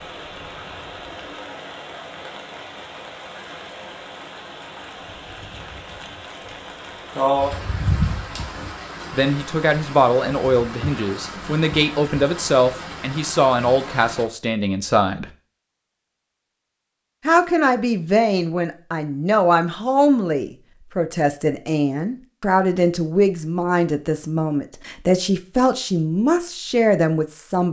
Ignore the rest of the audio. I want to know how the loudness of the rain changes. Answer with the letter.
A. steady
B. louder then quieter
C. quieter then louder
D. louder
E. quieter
B.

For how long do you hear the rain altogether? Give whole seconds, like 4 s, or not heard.
14 s.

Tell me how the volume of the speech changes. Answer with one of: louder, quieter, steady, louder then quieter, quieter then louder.
steady.